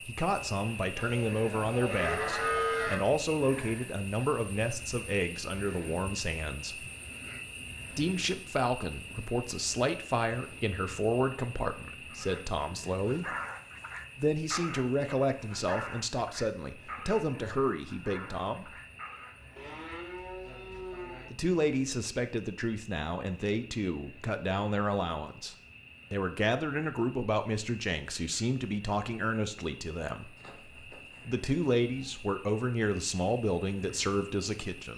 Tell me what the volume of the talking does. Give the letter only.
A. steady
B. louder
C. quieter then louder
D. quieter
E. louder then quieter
A.